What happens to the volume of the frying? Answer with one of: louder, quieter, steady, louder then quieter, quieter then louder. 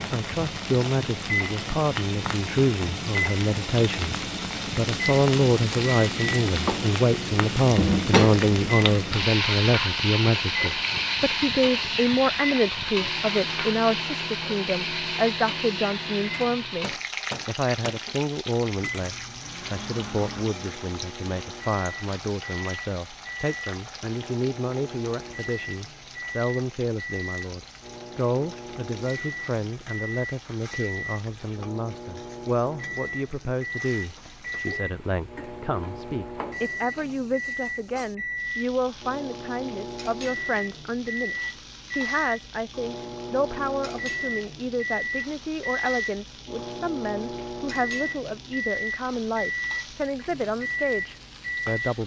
quieter.